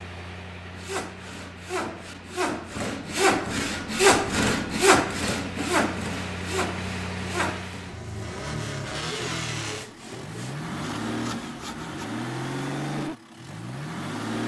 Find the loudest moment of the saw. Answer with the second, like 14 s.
4 s.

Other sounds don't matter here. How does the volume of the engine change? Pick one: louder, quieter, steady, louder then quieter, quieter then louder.
louder.